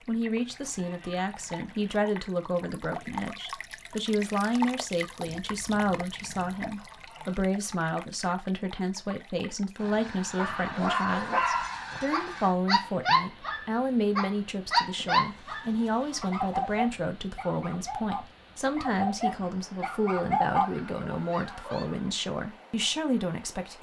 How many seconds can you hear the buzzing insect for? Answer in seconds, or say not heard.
not heard.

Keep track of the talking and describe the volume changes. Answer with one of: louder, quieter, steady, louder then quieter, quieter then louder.
steady.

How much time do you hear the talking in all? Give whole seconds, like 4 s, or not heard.
24 s.